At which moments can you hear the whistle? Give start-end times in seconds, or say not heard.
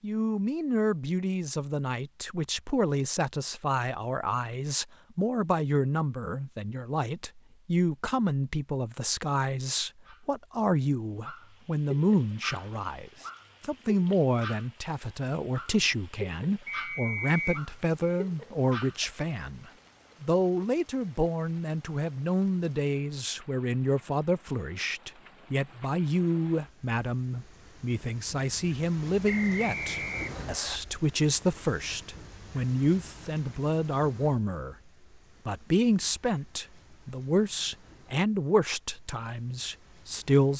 16.6-17.6, 29.2-30.8.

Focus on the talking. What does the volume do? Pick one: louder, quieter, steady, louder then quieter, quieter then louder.
steady.